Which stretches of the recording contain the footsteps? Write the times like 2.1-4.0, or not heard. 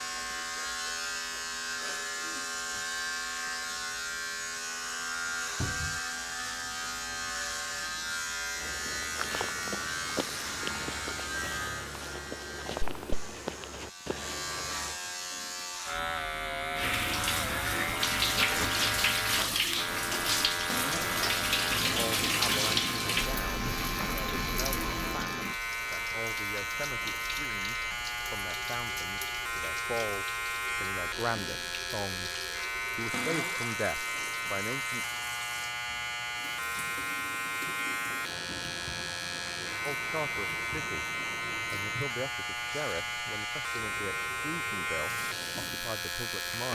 8.6-15.0.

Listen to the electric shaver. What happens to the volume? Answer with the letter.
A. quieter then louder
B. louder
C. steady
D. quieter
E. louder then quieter
C.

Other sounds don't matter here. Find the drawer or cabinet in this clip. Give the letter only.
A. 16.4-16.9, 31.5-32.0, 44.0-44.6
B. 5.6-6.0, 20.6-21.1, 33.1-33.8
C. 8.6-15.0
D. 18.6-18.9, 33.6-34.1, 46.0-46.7
B.